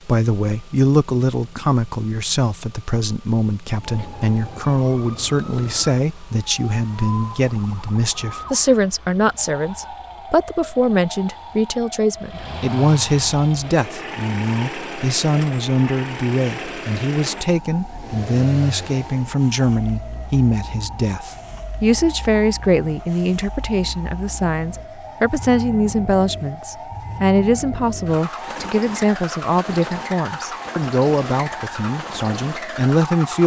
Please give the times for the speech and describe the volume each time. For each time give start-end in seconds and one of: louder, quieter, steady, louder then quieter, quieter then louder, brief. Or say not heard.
0.1-33.4 steady.